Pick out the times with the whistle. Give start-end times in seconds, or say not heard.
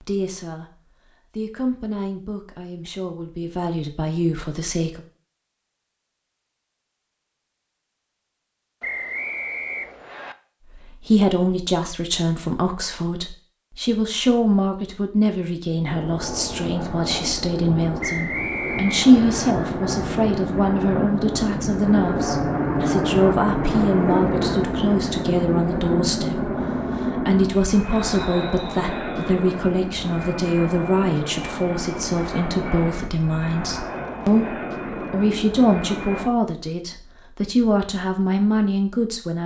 8.8-10.3, 18.0-19.6, 28.1-29.2.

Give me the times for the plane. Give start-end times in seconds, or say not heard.
15.8-36.3.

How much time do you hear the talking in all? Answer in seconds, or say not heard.
33 s.